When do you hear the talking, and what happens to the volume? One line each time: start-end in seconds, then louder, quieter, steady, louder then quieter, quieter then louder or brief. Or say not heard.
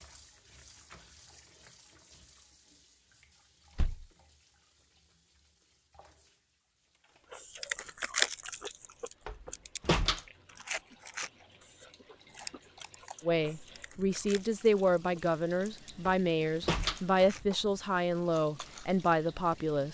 13.2-19.8 steady.